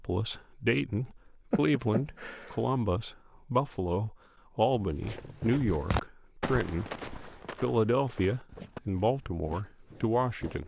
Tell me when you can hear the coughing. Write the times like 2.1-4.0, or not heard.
1.5-2.5.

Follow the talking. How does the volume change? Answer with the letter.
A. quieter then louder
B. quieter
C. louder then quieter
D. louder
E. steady
E.